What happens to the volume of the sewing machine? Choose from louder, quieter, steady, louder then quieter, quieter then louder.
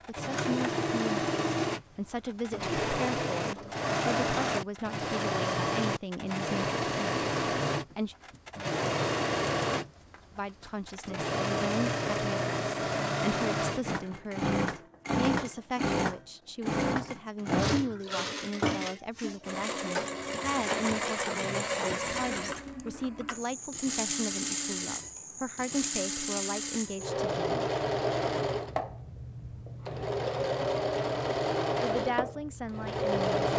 steady.